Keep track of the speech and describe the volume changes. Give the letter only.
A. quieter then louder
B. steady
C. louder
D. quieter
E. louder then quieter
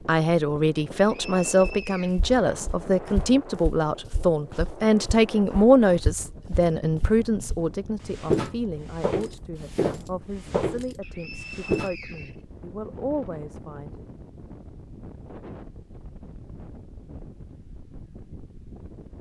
D.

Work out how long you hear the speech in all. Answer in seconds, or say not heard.
14 s.